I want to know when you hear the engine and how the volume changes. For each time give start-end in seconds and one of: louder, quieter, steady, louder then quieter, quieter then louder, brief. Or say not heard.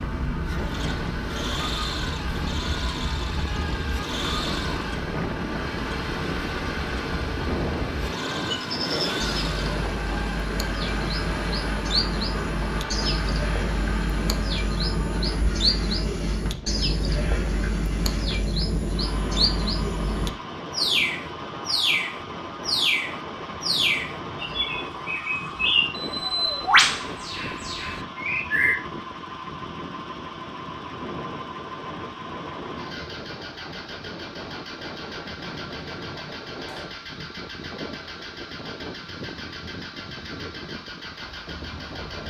0.0-42.2 quieter.